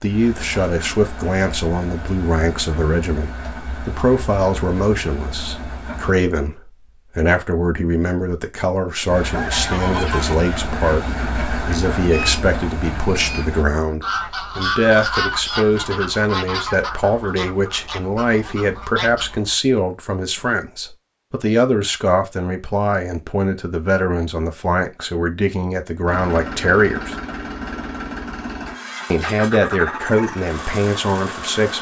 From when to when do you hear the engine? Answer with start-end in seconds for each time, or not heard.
0.0-6.2, 9.1-13.7, 26.1-31.7.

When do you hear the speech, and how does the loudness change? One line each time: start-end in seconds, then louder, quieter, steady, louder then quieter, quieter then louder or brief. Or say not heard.
0.0-27.1 steady
29.1-31.7 brief.